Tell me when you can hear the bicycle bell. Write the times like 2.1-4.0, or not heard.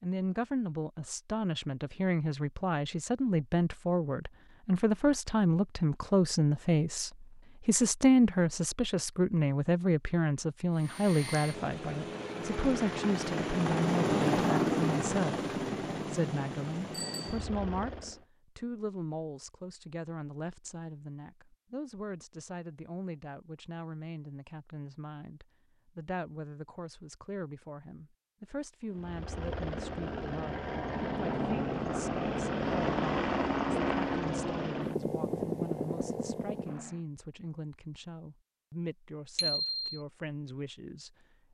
16.9-17.4, 39.4-39.9.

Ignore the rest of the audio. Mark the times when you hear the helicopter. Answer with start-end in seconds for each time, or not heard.
10.8-18.2, 28.9-37.0.